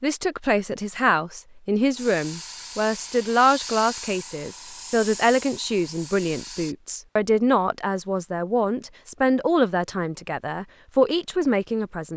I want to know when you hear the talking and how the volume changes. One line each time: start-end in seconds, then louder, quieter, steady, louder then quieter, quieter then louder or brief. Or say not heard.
0.0-12.1 steady.